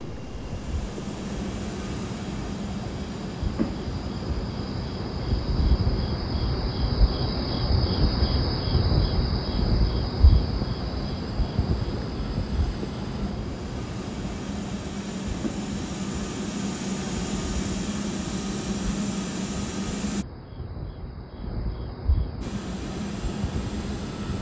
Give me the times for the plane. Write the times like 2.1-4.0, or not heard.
0.0-20.2, 22.4-24.3.